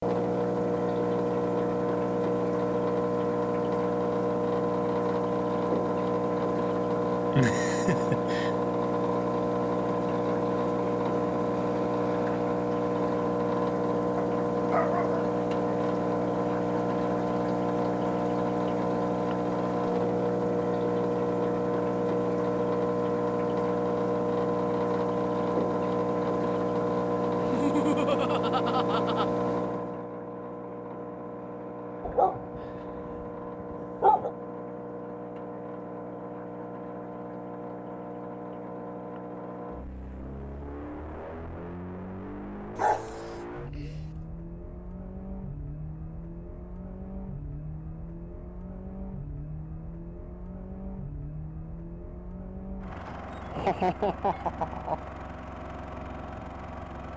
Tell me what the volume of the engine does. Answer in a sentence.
The loudness of the engine goes down.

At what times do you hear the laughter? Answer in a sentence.
You can hear the laughter from 7.3 to 8.5 s, from 27.4 to 29.2 s and from 53.5 to 55.0 s.